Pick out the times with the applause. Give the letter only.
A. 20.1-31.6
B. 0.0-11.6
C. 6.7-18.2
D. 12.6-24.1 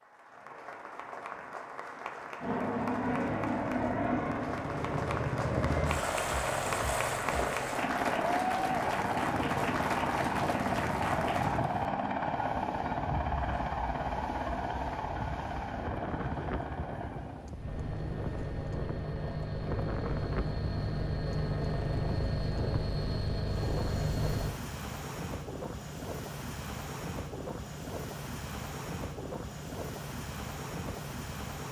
B.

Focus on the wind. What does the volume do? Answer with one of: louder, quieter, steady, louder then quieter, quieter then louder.
steady.